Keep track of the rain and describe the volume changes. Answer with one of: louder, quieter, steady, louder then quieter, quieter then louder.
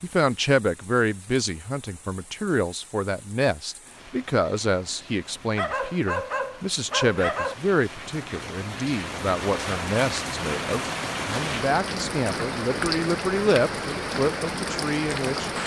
louder.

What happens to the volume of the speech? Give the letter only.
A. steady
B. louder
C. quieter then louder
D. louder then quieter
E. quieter
A.